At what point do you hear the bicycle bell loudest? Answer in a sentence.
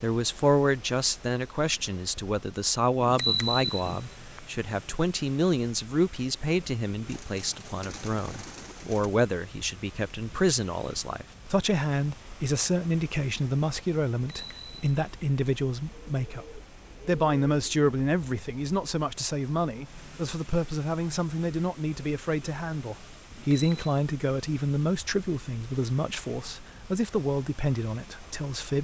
The loudest moment of the bicycle bell is at 3 seconds.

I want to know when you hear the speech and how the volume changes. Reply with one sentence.
The speech can be heard from 0.0 to 28.7 s, at a steady volume.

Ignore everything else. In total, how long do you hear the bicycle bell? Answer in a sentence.
You can hear the bicycle bell for 3 seconds altogether.